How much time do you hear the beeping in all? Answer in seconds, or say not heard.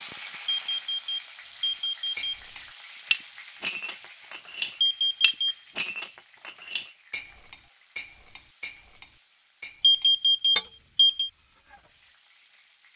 4 s.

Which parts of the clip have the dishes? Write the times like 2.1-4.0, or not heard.
2.1-11.8.